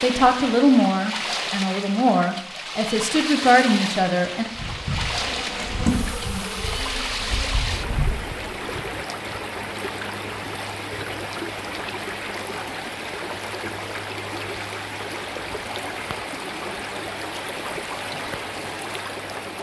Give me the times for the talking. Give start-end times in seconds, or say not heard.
0.0-4.5.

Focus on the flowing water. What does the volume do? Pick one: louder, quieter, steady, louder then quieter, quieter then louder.
steady.